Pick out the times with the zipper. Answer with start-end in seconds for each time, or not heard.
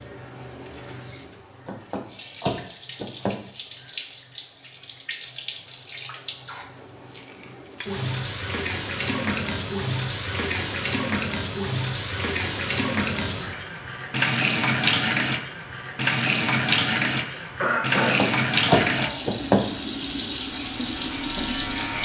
not heard.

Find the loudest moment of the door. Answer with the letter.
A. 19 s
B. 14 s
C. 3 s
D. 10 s
A.